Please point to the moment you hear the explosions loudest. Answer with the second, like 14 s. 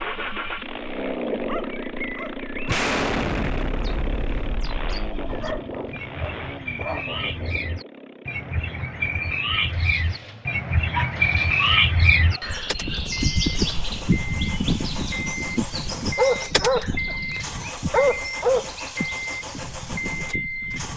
3 s.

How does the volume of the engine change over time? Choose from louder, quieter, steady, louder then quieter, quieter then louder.
quieter then louder.